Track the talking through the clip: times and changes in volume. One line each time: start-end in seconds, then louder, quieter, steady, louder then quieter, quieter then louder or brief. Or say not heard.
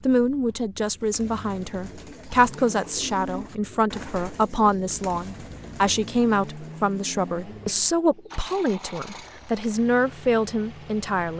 0.0-11.3 steady.